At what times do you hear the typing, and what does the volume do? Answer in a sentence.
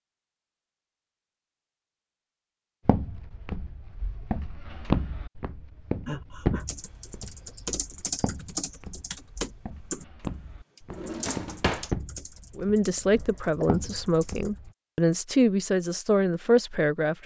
The typing can be heard from 6.7 to 14.7 s, getting quieter.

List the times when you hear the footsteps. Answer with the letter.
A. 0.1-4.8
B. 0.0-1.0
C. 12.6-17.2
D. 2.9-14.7
D.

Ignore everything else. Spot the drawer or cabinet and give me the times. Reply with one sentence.
The drawer or cabinet can be heard from 10.9 to 11.9 s.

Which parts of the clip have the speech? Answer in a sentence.
You can hear the speech from 12.6 to 17.2 s.